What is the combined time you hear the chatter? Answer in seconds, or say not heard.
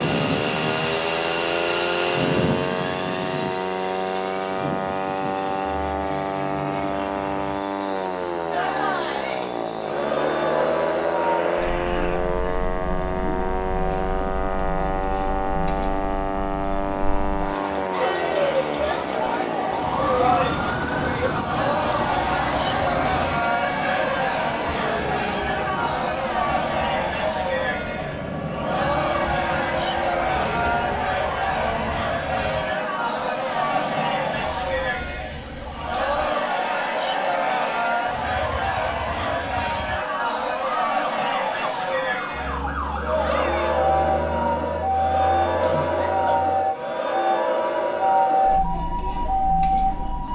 42 s.